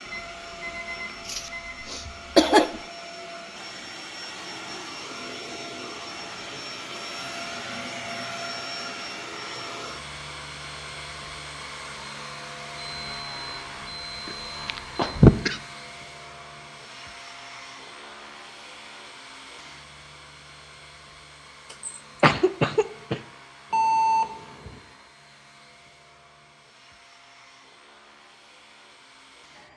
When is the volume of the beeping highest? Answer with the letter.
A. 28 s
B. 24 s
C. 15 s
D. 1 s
B.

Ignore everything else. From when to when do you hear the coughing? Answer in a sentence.
The coughing can be heard from 1.2 to 2.8 s, from 14.2 to 15.6 s and from 21.9 to 23.2 s.